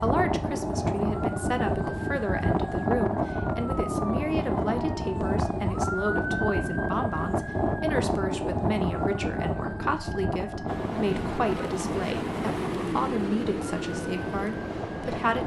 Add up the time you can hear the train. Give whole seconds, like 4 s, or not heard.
5 s.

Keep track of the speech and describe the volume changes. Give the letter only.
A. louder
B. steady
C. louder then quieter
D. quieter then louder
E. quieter
B.